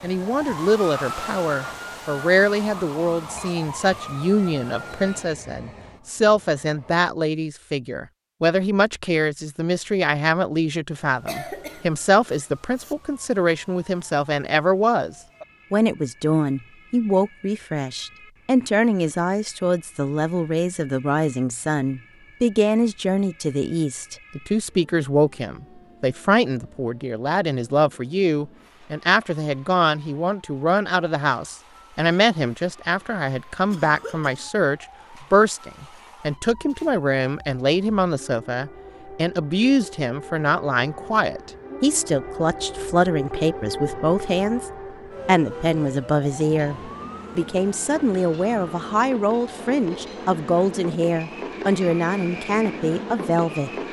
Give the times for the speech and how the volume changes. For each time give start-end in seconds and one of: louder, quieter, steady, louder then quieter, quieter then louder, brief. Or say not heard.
0.0-53.7 steady.